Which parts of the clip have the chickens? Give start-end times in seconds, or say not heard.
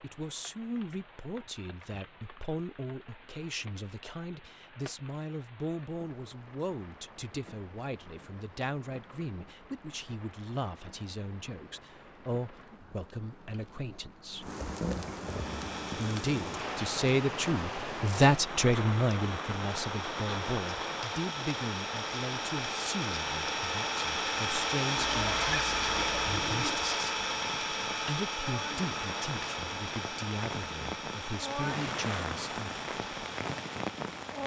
not heard.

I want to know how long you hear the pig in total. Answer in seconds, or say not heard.
2 s.